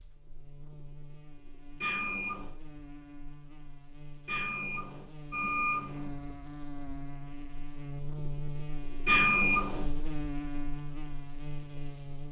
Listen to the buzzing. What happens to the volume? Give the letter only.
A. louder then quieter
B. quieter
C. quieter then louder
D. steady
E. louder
E.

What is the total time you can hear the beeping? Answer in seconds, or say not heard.
3 s.